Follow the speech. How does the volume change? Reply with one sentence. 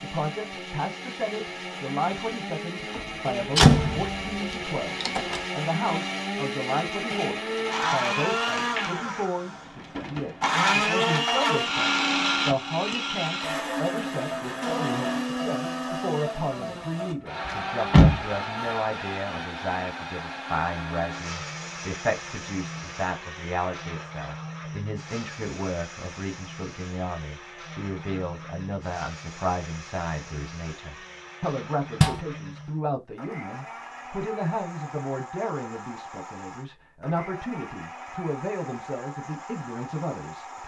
The loudness of the speech stays about the same.